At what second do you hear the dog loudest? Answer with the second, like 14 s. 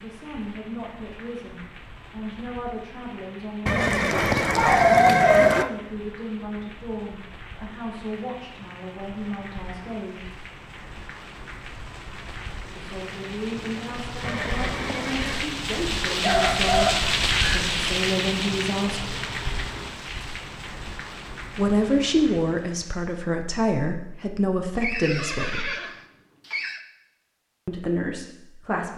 5 s.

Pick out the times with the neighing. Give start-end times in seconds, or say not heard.
3.6-5.7, 14.2-15.6, 24.8-26.8.